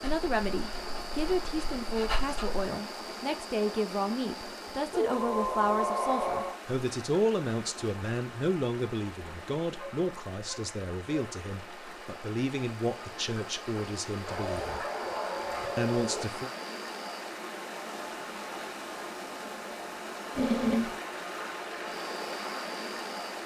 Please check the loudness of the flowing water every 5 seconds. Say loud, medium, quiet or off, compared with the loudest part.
loud, medium, medium, loud, loud.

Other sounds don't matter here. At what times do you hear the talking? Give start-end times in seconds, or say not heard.
0.0-14.8, 15.8-16.5.